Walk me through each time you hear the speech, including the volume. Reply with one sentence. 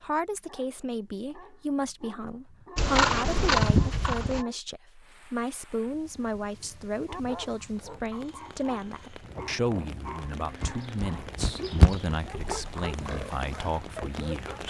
You can hear the speech from 0.0 to 14.6 s, at a steady volume.